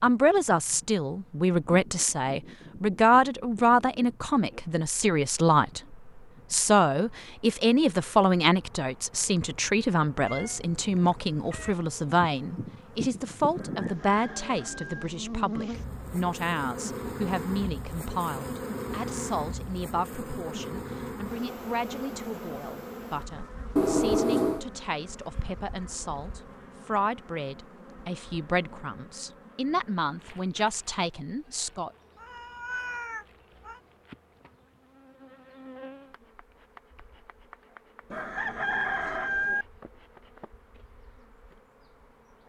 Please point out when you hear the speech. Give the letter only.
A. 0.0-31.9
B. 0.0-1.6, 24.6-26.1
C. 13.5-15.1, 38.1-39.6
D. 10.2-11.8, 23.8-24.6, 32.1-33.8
A.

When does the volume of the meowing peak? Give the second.
24 s.